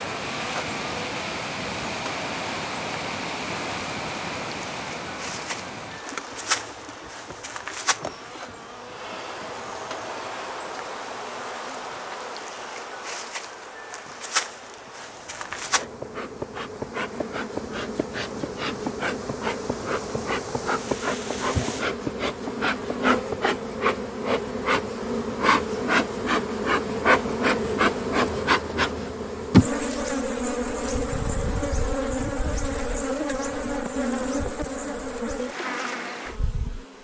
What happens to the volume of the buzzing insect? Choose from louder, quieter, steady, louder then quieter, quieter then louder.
louder.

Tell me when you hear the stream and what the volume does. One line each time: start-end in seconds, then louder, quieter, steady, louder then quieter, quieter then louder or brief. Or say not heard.
0.0-21.9 quieter then louder.